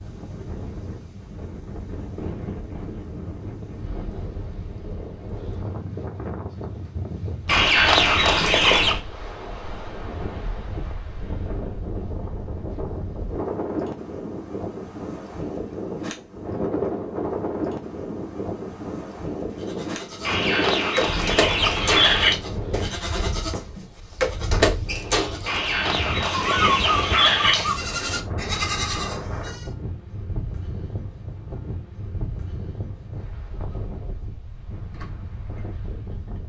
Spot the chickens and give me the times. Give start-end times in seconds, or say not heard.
7.5-9.0, 20.2-22.4, 25.4-27.8.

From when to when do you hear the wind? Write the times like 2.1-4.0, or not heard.
0.0-36.4.